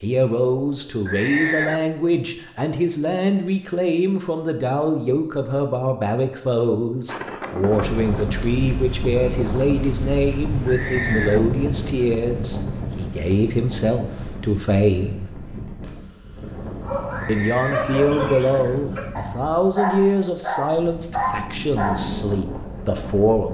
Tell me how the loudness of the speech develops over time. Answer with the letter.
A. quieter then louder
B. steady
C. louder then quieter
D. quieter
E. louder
B.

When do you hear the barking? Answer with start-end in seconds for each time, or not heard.
16.8-22.1.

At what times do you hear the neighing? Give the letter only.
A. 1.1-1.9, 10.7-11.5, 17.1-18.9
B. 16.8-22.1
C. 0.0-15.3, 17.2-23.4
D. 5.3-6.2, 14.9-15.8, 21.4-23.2
A.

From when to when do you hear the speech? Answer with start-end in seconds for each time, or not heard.
0.0-15.3, 17.2-23.4.